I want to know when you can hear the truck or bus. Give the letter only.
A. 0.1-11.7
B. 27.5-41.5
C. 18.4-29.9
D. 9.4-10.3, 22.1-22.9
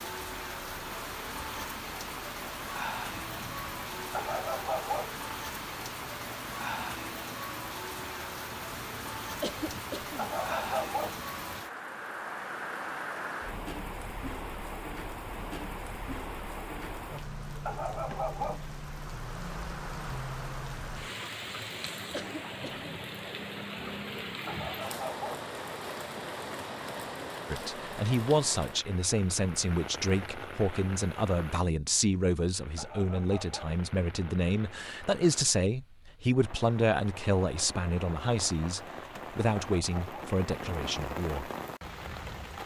A.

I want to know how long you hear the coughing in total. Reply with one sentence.
You can hear the coughing for 2 seconds altogether.